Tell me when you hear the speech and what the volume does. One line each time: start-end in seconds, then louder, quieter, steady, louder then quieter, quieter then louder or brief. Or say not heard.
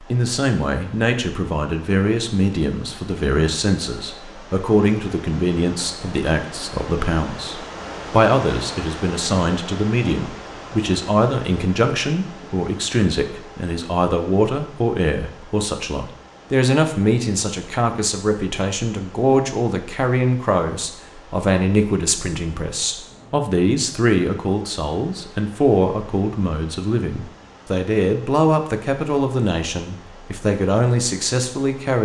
0.0-32.0 steady.